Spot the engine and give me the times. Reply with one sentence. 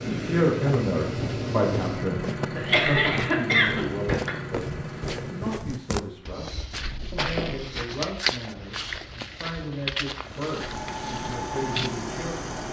The engine can be heard from 0.0 to 5.6 s and from 10.2 to 12.6 s.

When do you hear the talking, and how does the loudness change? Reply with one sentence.
You can hear the talking from 0.0 to 12.6 s, getting quieter.